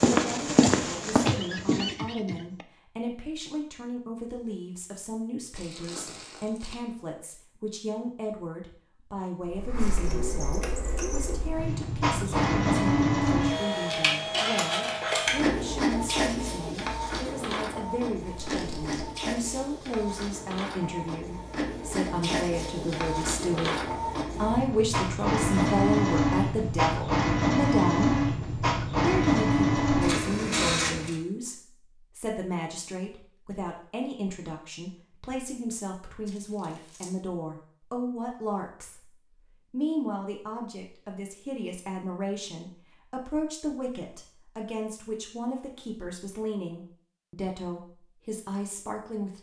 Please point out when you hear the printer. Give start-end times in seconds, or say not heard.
9.4-31.1.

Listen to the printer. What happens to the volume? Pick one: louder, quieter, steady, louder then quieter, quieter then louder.
quieter then louder.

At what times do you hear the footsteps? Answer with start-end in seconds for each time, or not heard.
0.0-1.9.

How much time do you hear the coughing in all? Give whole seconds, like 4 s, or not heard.
2 s.